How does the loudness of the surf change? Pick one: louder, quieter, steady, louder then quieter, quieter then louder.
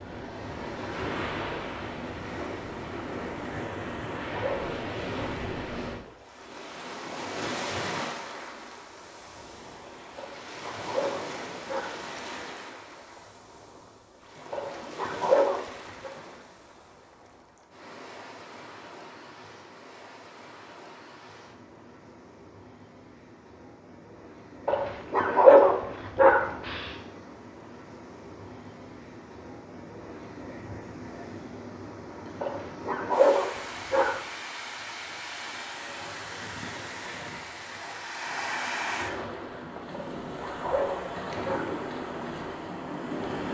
quieter then louder.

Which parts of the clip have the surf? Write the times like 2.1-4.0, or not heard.
0.0-43.5.